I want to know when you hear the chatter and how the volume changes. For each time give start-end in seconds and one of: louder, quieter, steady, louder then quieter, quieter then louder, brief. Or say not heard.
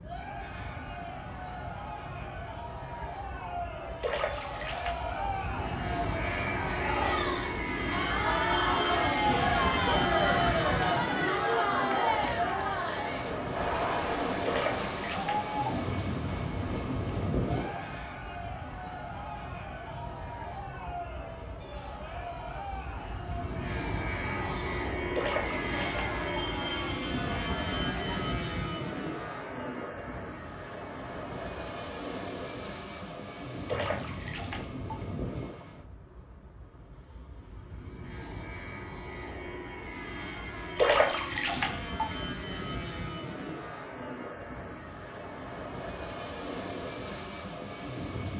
0.0-28.3 louder then quieter.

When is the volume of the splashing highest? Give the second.
41 s.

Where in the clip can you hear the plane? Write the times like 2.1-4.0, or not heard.
0.0-48.3.